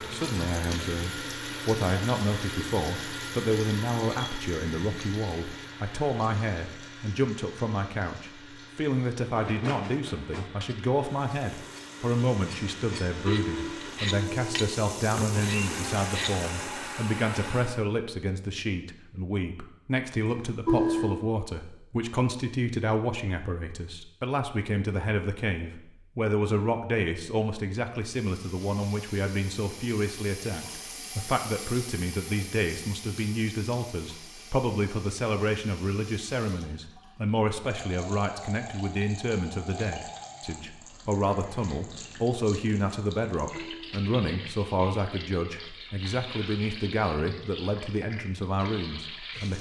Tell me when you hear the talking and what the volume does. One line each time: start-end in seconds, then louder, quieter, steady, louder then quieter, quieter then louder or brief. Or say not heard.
0.0-49.5 steady.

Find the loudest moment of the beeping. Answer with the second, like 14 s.
21 s.